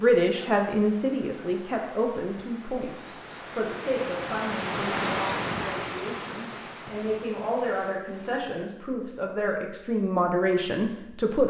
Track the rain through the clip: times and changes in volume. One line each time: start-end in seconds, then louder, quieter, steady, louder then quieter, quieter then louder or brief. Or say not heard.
0.0-8.6 louder then quieter.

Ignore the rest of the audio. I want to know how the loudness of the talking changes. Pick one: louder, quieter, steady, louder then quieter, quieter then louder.
quieter then louder.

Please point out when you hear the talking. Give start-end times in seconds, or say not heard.
0.0-11.4.